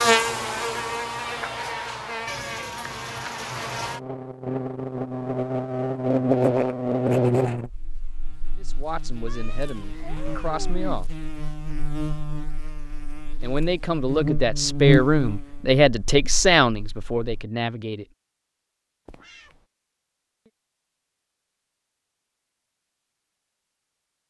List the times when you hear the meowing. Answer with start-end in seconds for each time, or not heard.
2.2-4.0, 9.2-10.9, 19.1-19.6.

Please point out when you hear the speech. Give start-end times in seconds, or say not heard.
8.6-11.1, 13.4-18.1.